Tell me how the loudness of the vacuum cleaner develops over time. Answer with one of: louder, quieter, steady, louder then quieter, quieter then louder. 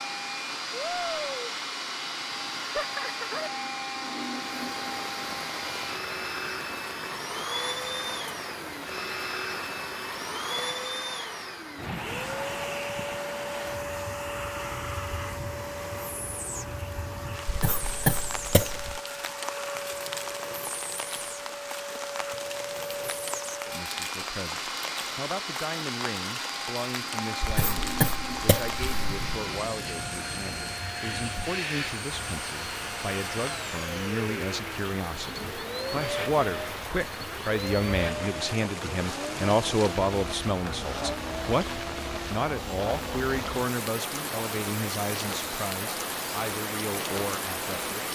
steady.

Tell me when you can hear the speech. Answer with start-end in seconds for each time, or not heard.
23.6-48.0.